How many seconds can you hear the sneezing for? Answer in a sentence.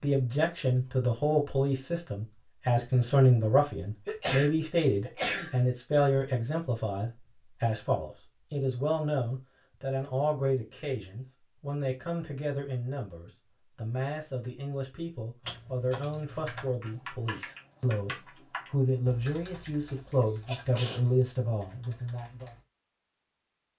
You can hear the sneezing for 2 seconds altogether.